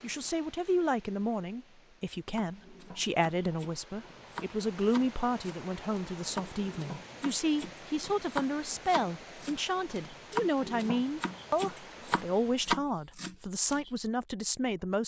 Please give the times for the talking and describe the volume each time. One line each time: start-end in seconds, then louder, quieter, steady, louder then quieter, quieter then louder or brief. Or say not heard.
0.0-15.0 steady.